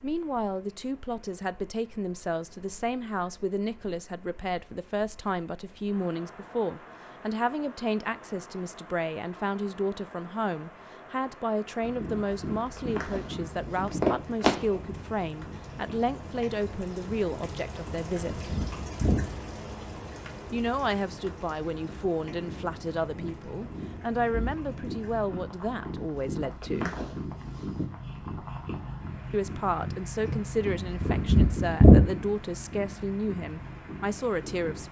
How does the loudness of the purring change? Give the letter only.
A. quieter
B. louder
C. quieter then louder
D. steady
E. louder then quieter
C.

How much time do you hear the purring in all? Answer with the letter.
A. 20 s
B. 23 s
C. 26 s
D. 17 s
B.